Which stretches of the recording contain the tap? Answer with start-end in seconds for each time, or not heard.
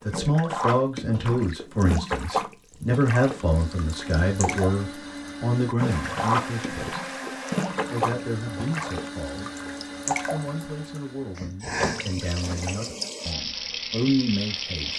0.0-14.9.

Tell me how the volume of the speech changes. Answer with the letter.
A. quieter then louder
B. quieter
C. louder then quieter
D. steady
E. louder
A.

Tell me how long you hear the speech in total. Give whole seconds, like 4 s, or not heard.
14 s.